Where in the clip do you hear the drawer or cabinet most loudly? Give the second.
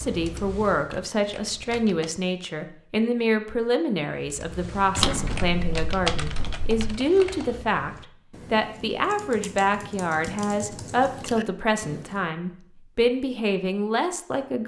5 s.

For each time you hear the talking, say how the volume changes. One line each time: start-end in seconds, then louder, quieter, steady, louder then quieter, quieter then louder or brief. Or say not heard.
0.0-14.6 steady.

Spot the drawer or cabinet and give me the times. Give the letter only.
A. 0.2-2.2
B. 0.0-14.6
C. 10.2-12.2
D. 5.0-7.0
D.